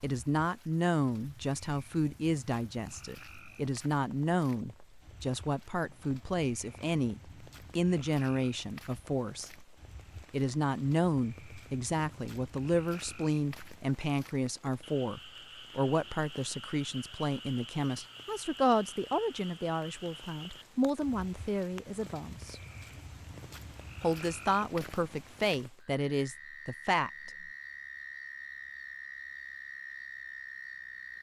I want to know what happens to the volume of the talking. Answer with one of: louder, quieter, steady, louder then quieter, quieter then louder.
steady.